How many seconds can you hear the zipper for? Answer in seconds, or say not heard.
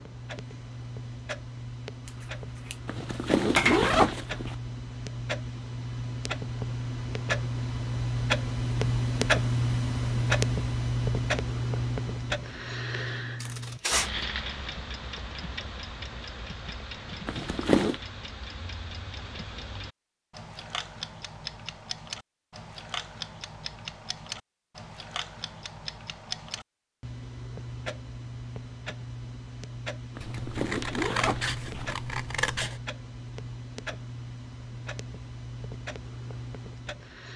4 s.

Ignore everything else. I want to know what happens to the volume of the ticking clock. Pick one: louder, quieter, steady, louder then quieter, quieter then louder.
louder then quieter.